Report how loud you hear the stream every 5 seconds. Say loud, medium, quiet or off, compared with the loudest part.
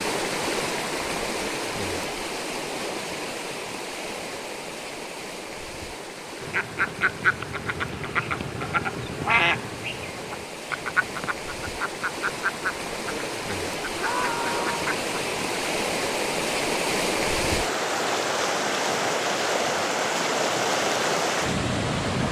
medium, quiet, medium, loud, loud.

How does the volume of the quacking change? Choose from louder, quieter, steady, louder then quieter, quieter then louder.
quieter.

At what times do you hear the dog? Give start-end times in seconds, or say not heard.
not heard.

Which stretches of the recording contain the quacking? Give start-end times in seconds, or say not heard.
6.4-15.8.